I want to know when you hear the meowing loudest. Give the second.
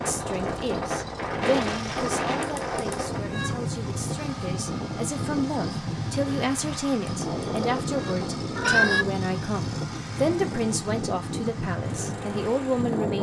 9 s.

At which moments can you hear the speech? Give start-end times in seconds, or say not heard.
0.1-13.1.